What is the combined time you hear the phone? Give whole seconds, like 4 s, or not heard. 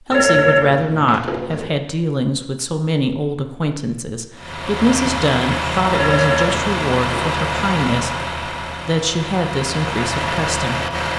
3 s.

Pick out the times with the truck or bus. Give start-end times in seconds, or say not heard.
4.3-11.1.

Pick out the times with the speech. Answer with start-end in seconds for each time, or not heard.
0.1-10.8.